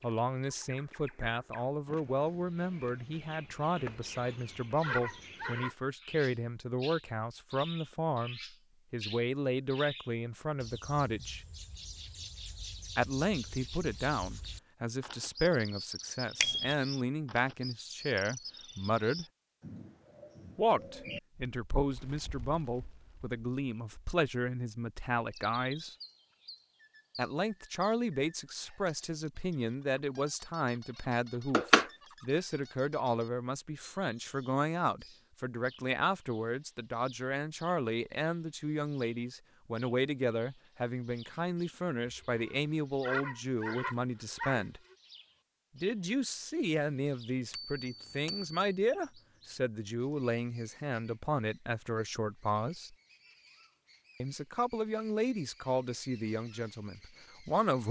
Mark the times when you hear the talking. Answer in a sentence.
You can hear the talking from 0.0 to 11.4 s, from 12.9 to 19.2 s, from 20.6 to 25.9 s, from 27.1 to 44.8 s, from 45.8 to 53.0 s and from 54.2 to 57.8 s.